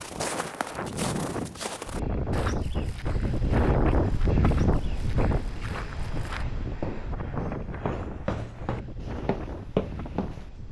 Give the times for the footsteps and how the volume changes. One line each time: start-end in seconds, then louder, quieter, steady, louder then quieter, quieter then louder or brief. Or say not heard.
0.0-10.4 quieter then louder.